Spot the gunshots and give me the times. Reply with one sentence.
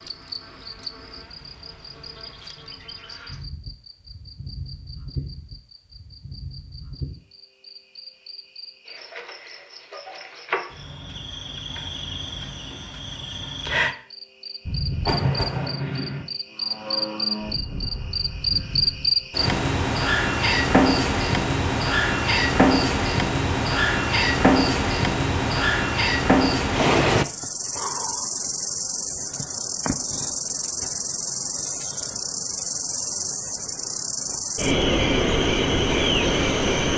You can hear the gunshots from 14.7 to 16.2 s.